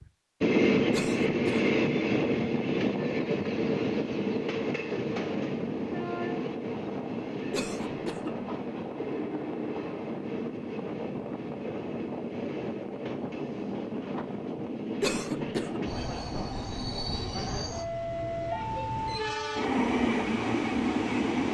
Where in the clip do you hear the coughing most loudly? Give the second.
15 s.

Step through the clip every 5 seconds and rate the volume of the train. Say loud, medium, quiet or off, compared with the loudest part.
loud, medium, medium, medium, loud.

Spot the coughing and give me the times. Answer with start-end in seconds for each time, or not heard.
0.9-1.7, 7.5-8.3, 15.0-15.8.